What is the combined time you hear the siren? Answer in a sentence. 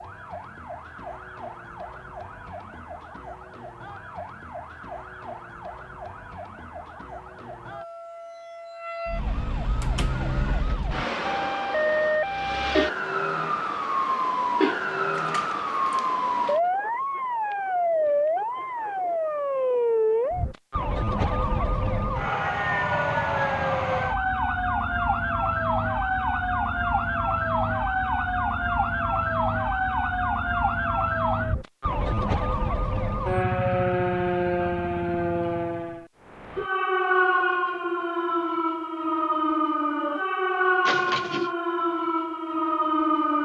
You can hear the siren for 43 seconds altogether.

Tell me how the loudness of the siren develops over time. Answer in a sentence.
The volume of the siren goes up.